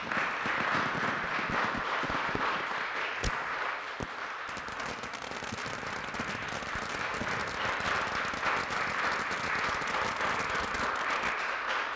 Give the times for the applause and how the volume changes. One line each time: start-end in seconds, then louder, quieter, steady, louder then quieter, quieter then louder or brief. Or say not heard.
0.0-11.9 quieter then louder.